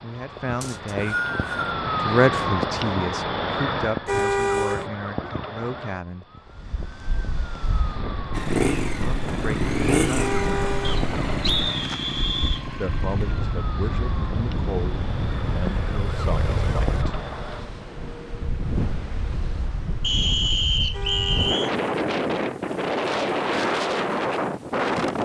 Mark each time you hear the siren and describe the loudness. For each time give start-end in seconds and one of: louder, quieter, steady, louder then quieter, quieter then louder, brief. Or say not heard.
0.0-17.8 quieter.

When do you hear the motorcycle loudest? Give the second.
10 s.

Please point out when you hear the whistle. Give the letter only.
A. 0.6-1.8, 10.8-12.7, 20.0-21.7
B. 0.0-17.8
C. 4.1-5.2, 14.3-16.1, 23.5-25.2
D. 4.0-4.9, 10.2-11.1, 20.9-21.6
A.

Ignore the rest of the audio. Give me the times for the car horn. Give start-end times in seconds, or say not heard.
4.0-4.9, 10.2-11.1, 20.9-21.6.